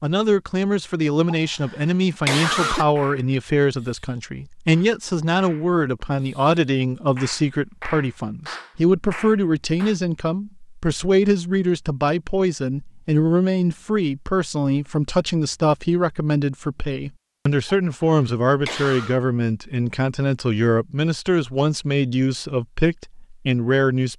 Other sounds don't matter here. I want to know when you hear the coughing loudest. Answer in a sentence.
The volume of the coughing peaks at 2 seconds.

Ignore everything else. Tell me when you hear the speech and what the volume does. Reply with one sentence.
The speech can be heard from 0.0 to 24.1 s, at a steady volume.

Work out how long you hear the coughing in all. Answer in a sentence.
The coughing can be heard for 3 seconds in total.